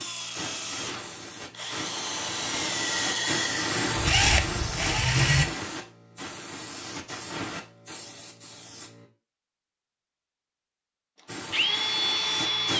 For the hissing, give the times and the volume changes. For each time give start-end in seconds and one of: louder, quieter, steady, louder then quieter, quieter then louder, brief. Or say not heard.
0.0-9.1 louder then quieter
11.2-12.7 brief.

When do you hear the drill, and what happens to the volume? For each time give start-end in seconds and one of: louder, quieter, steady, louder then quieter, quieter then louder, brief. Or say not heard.
0.0-5.5 louder
11.5-12.7 brief.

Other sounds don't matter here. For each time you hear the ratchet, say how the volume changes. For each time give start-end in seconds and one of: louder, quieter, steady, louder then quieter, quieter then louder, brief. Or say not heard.
not heard.